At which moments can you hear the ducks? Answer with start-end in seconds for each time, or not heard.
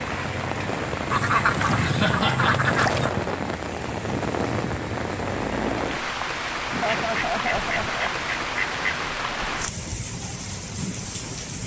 1.1-3.1, 6.8-9.1.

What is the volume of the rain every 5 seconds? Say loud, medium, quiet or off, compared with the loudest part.
loud, loud, medium.